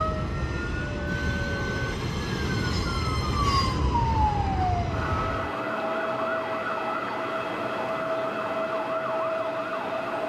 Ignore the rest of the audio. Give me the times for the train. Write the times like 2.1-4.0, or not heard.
0.0-5.5.